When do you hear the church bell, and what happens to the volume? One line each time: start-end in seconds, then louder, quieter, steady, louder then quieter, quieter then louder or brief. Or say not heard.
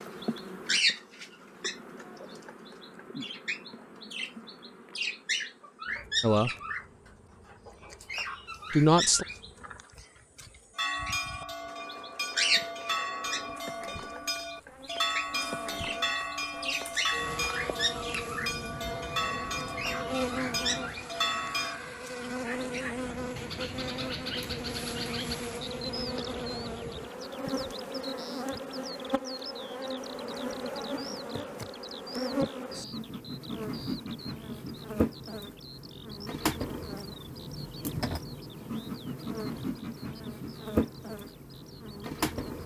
10.8-21.8 steady.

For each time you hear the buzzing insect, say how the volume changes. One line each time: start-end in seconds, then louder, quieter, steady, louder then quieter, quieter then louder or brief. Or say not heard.
0.0-42.6 louder.